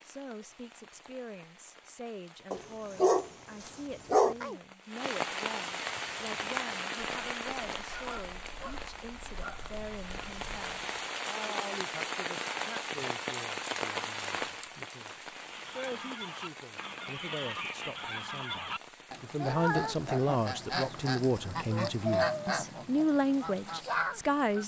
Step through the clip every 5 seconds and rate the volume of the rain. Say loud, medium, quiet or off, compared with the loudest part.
quiet, loud, loud, medium, quiet.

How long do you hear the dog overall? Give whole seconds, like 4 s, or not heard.
2 s.